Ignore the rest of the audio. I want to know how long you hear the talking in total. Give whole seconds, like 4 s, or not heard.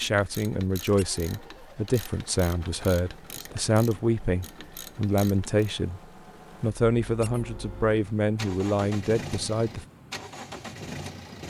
9 s.